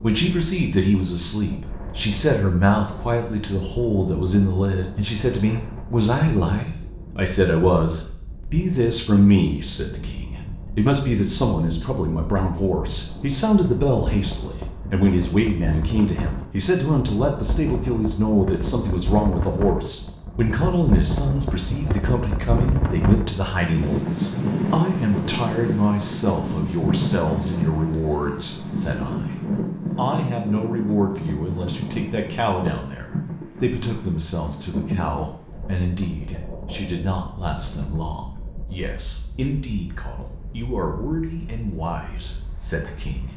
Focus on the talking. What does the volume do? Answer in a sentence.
The volume of the talking goes down.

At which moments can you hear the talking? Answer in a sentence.
You can hear the talking from 0.0 to 43.3 s.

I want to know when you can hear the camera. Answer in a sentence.
You can't hear the camera here.